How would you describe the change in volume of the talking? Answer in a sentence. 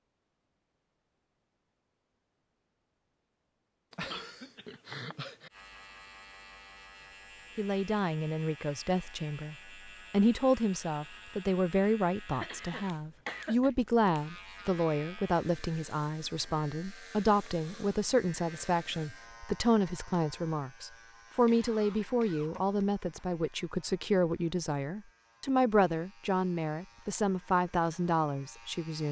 The loudness of the talking stays about the same.